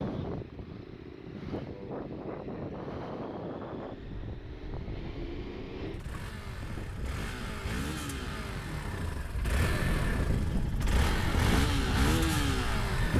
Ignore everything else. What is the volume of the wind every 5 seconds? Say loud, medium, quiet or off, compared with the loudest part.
medium, medium, loud.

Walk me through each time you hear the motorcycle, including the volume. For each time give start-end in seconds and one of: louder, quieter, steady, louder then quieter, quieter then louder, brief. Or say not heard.
0.0-13.1 louder.